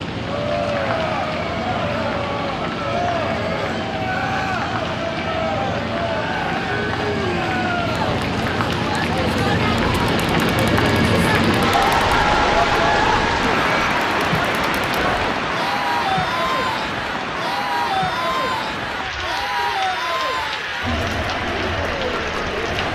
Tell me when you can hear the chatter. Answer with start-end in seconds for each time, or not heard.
0.1-22.9.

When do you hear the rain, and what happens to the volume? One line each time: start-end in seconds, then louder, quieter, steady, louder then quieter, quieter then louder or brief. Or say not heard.
0.0-22.9 louder then quieter.